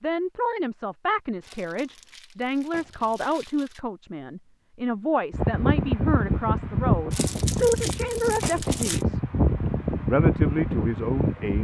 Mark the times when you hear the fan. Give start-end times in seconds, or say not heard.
5.3-11.5.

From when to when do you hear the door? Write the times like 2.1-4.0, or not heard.
not heard.